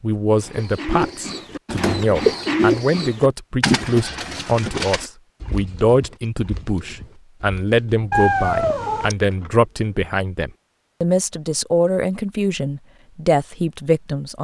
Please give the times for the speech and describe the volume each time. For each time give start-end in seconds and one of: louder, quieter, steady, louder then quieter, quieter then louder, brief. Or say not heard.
0.0-14.4 steady.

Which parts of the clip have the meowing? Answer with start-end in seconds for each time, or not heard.
8.1-9.2.